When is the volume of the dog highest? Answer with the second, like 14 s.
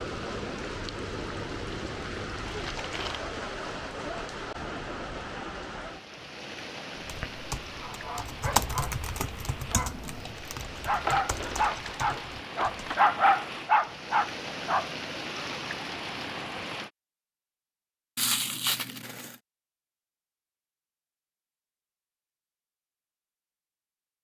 13 s.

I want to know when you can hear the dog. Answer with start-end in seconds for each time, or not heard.
7.7-15.4.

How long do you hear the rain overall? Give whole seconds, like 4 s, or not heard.
17 s.